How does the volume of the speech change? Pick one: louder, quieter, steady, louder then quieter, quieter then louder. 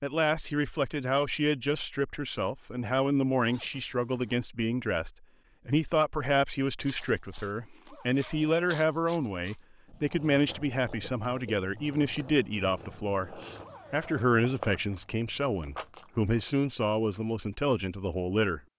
steady.